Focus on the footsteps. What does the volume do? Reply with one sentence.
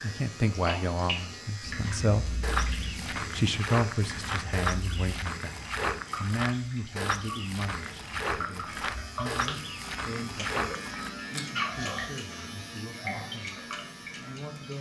The volume of the footsteps stays about the same.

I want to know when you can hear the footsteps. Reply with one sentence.
You can hear the footsteps from 2.4 to 11.1 s.